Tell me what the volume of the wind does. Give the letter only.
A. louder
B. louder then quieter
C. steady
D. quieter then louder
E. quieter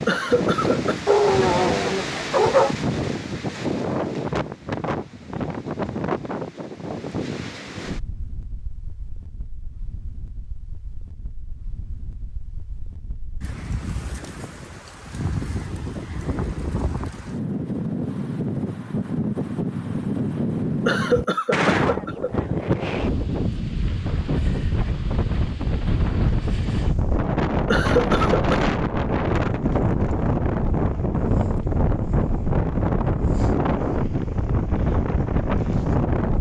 D.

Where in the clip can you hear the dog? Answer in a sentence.
You can hear the dog from 1.1 to 2.8 s.